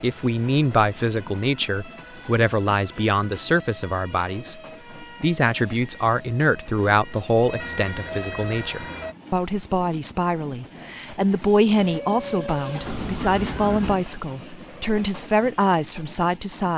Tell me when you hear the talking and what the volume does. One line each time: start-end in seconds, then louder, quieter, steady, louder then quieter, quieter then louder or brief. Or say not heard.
0.0-16.7 steady.